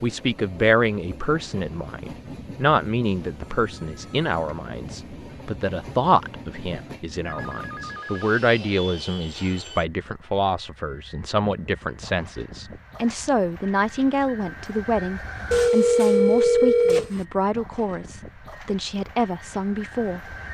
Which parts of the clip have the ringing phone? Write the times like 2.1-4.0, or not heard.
3.0-4.7, 7.2-8.3, 15.5-17.2.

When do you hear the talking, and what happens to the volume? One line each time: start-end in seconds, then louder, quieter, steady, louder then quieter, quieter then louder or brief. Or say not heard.
0.0-20.4 steady.